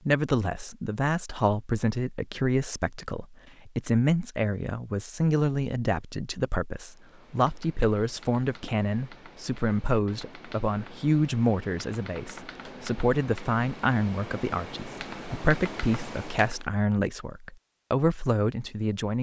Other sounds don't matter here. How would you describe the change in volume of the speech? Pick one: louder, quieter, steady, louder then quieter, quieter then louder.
steady.